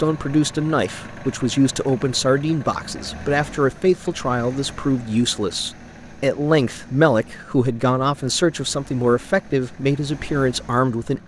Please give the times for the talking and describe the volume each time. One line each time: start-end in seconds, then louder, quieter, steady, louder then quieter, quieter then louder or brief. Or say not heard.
0.0-11.2 steady.